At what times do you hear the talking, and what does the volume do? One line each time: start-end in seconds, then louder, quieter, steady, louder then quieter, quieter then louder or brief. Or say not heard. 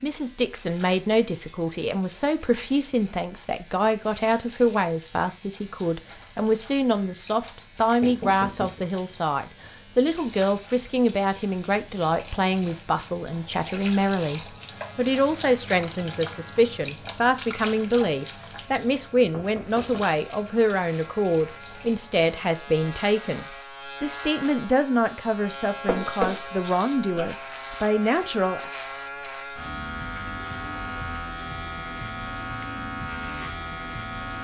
0.0-28.7 steady.